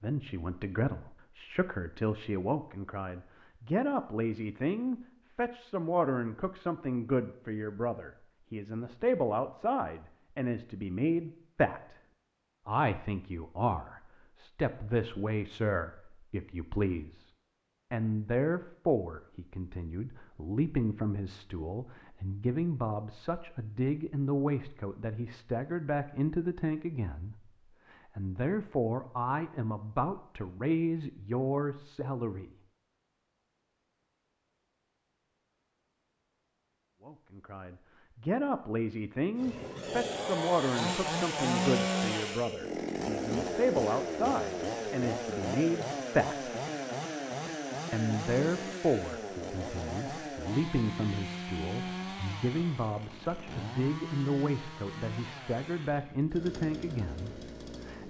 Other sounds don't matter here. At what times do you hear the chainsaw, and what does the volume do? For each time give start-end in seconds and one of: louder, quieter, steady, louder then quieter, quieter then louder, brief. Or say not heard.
39.4-58.0 quieter.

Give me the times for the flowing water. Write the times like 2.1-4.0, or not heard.
not heard.